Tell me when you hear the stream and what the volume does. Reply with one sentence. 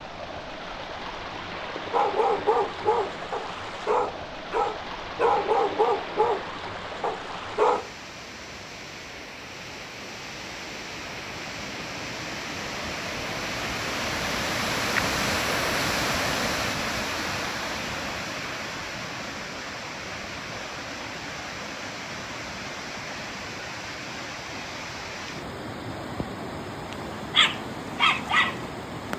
The stream can be heard from 0.0 to 29.1 s, getting louder then quieter.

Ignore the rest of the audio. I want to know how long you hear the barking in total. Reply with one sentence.
The barking can be heard for 8 seconds in total.